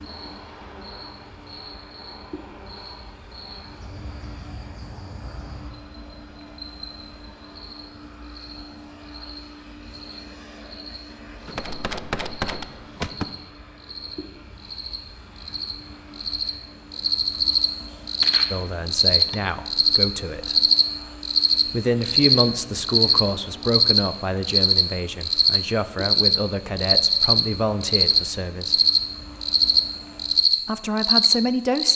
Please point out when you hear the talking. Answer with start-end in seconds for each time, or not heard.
18.5-20.7, 21.6-28.8, 30.6-31.9.